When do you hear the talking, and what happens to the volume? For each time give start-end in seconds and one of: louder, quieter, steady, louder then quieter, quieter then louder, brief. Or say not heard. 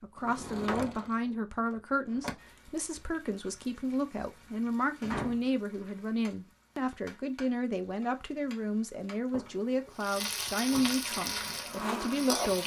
0.0-12.6 steady.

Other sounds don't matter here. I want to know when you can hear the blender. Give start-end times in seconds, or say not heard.
11.0-12.6.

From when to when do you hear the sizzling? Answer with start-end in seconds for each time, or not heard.
2.4-12.6.